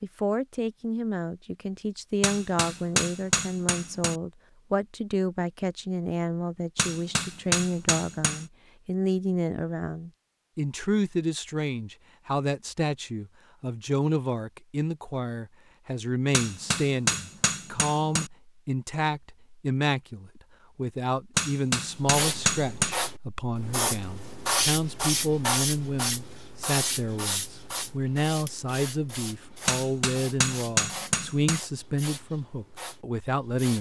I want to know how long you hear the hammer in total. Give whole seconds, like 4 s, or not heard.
9 s.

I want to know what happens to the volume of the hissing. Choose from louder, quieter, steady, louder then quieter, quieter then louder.
quieter.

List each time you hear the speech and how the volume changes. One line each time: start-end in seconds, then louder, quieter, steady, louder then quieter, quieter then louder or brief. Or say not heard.
0.0-33.7 steady.